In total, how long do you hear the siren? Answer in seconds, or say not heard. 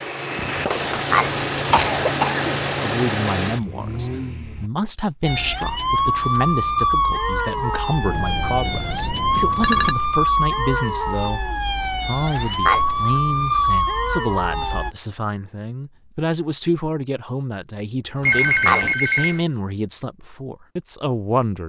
10 s.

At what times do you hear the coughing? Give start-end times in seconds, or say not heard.
0.9-2.6, 12.2-12.8, 18.2-18.9.